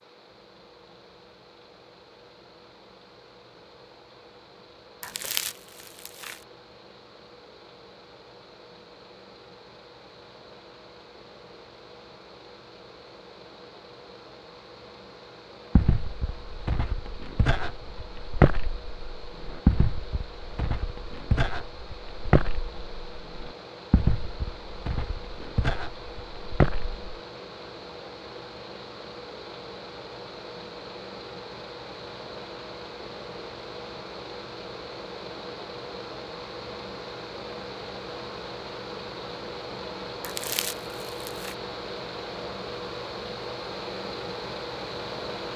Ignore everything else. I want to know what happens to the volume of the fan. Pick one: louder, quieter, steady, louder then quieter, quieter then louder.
louder.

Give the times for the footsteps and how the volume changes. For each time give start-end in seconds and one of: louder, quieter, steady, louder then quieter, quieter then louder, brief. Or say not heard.
15.8-26.9 louder then quieter.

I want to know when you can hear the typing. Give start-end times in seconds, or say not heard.
not heard.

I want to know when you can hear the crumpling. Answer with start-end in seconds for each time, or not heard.
5.0-6.4, 40.2-41.5.